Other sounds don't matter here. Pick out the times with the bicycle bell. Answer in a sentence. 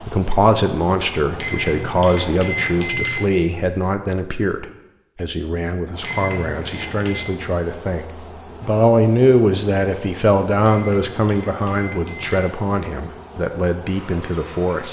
The bicycle bell can be heard from 1.4 to 3.3 s, from 6.0 to 7.3 s and from 10.6 to 12.6 s.